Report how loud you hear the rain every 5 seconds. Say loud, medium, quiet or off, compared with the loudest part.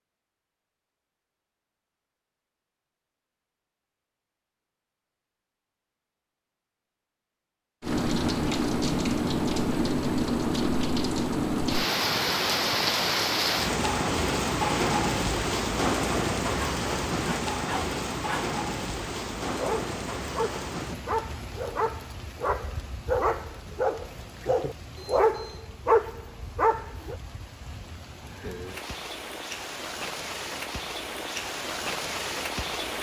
off, loud, loud, loud, quiet, quiet, medium.